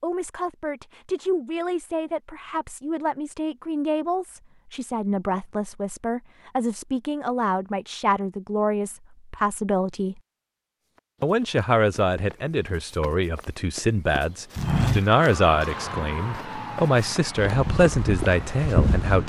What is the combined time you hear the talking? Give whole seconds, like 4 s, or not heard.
18 s.